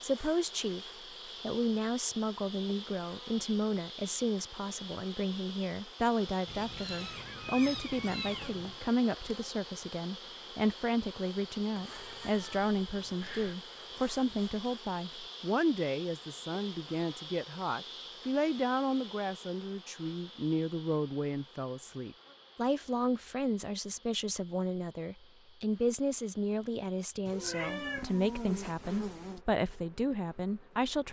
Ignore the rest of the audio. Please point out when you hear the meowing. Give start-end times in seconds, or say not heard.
6.5-8.8, 11.7-13.6, 27.2-29.4.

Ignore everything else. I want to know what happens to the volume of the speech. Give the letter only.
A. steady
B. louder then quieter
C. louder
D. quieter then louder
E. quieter
A.